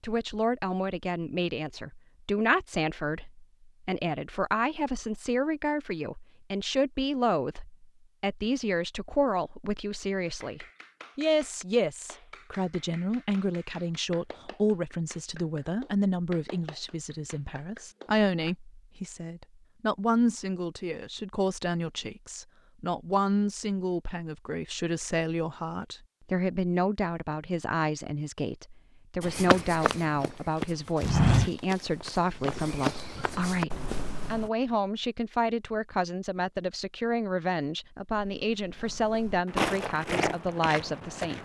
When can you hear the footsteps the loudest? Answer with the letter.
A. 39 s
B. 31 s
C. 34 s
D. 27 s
B.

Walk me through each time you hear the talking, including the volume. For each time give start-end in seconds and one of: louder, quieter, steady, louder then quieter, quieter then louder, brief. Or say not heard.
0.0-41.4 steady.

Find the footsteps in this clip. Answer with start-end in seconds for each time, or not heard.
29.2-34.5, 38.1-41.4.